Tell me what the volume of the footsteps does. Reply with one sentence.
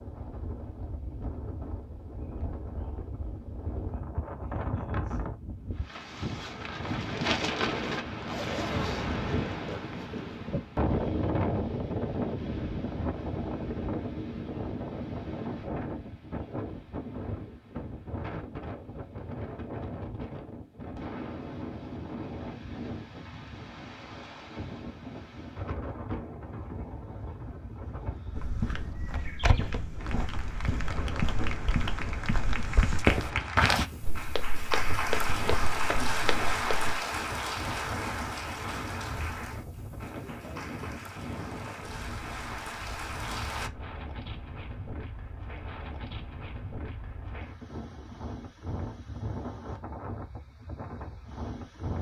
The volume of the footsteps goes up, then down.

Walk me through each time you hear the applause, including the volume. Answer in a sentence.
You can hear the applause from 29.9 to 43.7 s, getting louder then quieter.